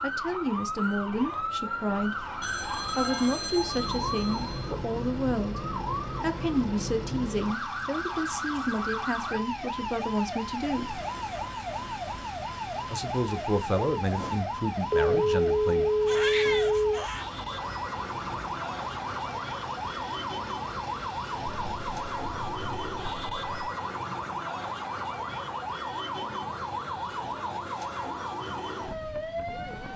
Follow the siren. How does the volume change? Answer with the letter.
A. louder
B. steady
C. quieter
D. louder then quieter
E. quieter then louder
B.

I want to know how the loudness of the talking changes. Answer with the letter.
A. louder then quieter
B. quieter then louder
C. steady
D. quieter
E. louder
C.